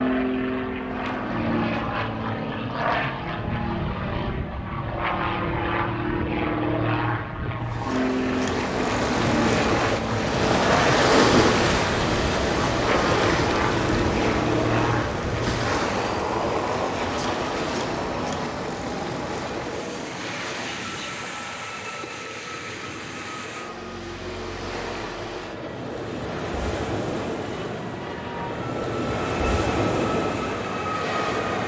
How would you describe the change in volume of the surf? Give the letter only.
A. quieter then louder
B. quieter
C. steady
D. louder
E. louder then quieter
A.